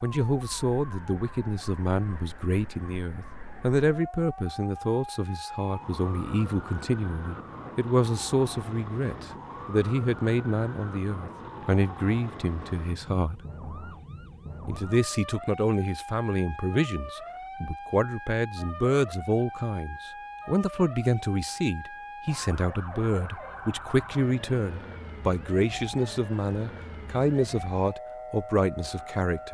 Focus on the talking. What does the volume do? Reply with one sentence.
The volume of the talking stays about the same.